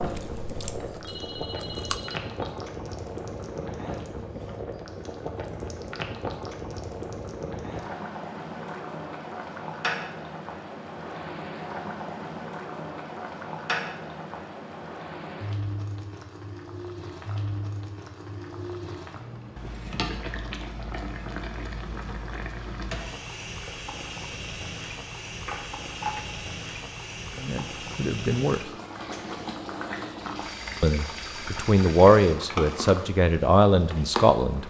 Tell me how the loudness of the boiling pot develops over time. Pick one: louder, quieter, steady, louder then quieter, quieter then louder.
steady.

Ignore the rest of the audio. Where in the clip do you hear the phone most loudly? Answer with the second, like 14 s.
26 s.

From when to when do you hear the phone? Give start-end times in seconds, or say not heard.
0.9-2.3, 25.4-26.2.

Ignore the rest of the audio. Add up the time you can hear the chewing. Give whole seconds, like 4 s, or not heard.
2 s.